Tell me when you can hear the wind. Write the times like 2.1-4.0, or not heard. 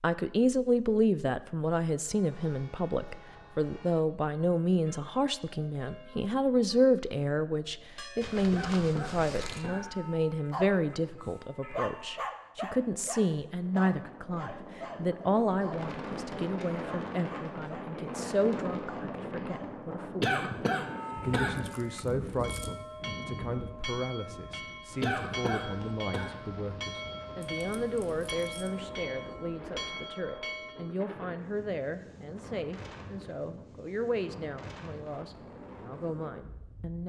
13.4-37.0.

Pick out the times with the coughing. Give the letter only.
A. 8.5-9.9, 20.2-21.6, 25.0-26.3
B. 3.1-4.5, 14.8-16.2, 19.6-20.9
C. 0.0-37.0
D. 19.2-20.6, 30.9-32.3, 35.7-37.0
A.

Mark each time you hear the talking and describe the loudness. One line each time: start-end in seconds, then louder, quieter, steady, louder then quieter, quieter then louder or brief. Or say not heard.
0.0-37.0 quieter.